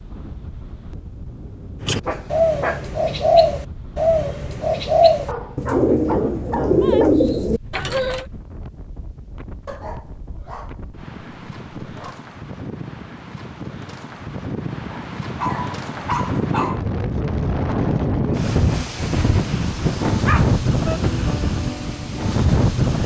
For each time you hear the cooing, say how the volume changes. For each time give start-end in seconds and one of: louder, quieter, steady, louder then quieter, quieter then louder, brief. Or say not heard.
1.8-8.2 steady.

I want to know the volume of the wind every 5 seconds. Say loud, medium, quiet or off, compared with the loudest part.
quiet, quiet, quiet, loud, loud.